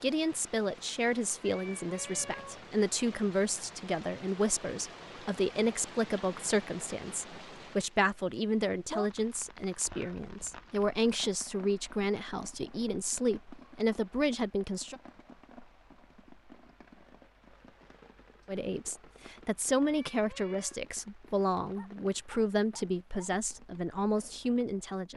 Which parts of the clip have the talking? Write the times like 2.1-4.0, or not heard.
0.0-14.9, 18.4-25.1.